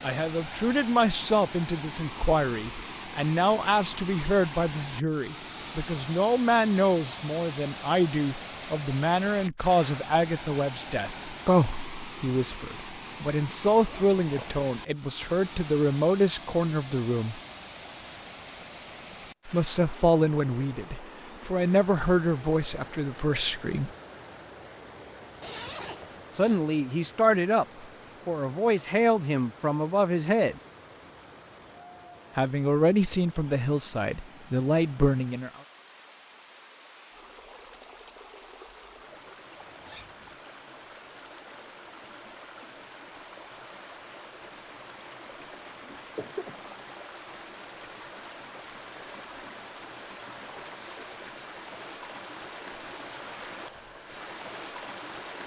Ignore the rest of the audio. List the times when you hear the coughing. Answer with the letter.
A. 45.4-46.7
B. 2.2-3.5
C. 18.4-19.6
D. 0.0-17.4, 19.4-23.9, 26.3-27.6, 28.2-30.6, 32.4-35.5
A.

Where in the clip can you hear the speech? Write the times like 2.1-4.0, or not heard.
0.0-17.4, 19.4-23.9, 26.3-27.6, 28.2-30.6, 32.4-35.5.